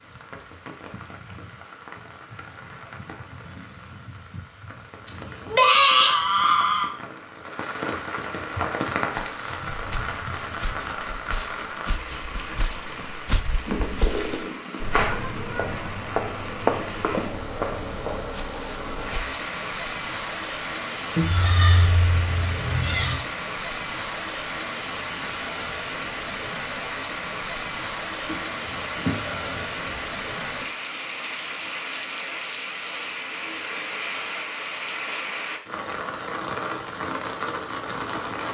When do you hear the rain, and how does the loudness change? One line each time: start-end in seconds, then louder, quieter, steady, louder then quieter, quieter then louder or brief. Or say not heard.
0.0-38.4 louder.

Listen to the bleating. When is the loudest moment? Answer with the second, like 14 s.
6 s.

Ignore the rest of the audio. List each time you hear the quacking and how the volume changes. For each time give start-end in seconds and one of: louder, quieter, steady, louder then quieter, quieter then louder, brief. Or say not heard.
not heard.